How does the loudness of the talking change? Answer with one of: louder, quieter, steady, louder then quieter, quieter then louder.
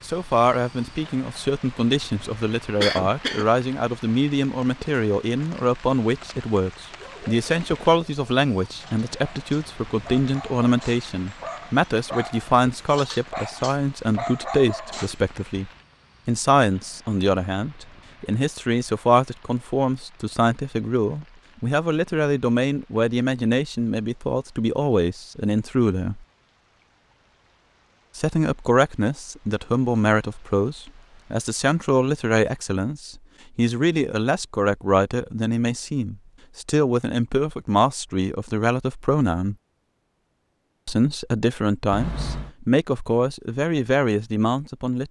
steady.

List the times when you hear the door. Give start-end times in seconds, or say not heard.
41.9-42.5.